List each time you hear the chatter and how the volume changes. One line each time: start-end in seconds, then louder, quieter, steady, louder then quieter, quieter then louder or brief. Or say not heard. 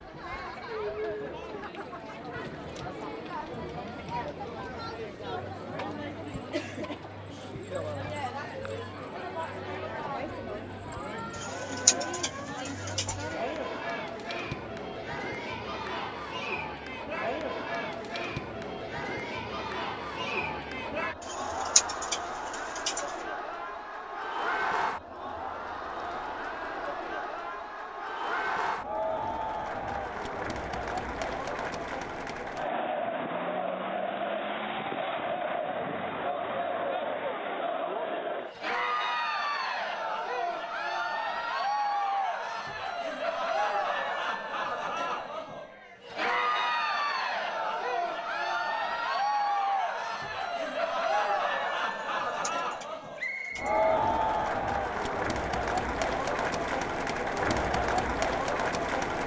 0.0-59.2 louder.